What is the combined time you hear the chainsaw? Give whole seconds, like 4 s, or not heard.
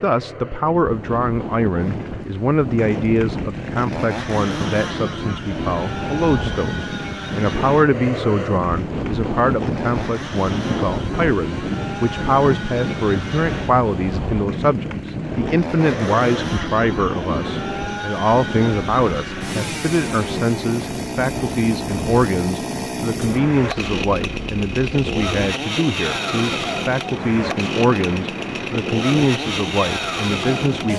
29 s.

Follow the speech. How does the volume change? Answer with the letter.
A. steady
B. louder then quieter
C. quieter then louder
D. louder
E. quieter
A.